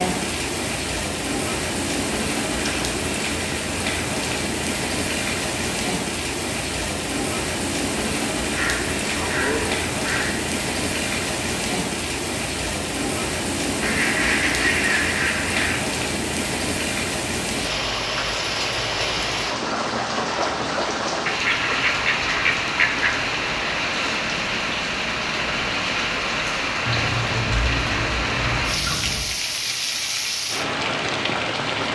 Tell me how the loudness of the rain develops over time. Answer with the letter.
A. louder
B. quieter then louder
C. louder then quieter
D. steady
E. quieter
D.